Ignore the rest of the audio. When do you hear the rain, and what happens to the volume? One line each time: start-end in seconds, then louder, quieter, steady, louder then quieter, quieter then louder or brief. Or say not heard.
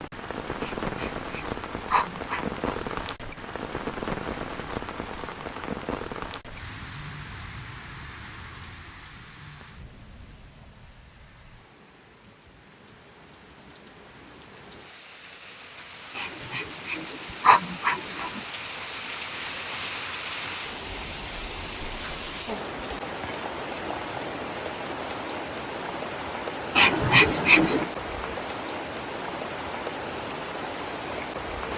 0.0-31.7 quieter then louder.